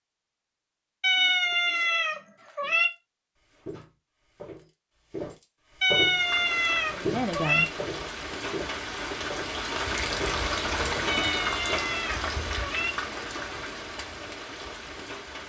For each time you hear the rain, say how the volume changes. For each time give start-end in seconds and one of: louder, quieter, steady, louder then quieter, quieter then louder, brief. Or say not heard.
6.0-15.4 louder then quieter.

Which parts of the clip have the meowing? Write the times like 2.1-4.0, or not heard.
1.0-2.9, 5.8-7.7, 11.1-12.9.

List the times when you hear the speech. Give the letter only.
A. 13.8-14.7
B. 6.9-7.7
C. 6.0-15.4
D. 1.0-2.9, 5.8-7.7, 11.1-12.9
B.